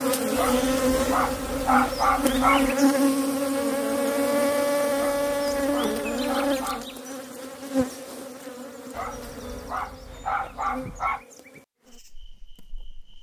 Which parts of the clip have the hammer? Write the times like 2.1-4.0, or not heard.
not heard.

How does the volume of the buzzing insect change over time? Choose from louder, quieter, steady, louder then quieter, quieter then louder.
quieter.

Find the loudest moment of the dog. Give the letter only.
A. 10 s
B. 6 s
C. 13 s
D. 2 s
D.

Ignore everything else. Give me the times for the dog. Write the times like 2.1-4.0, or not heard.
0.3-2.7, 5.0-6.8, 8.9-11.2.